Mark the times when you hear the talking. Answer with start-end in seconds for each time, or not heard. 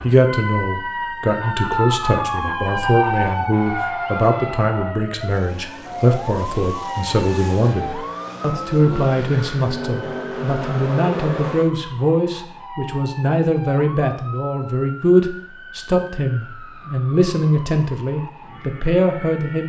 0.0-19.6.